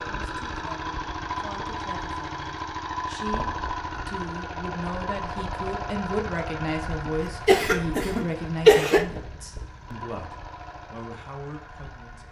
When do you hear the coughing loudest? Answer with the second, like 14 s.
9 s.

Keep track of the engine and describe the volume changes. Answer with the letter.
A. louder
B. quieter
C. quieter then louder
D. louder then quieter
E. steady
B.